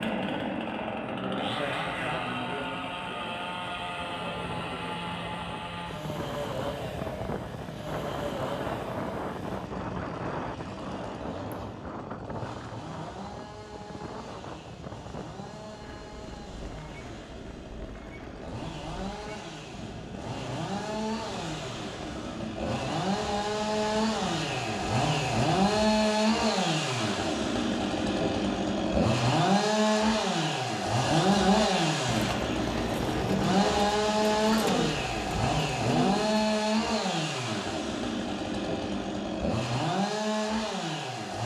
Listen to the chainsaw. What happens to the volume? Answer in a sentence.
The loudness of the chainsaw goes down, then up.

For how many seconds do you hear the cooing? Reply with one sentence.
You can hear the cooing for 5 seconds altogether.